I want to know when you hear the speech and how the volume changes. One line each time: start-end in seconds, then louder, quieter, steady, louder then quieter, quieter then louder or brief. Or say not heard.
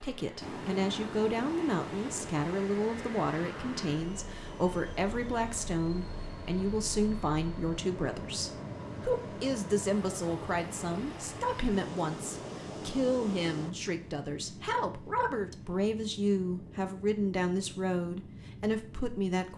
0.0-19.5 steady.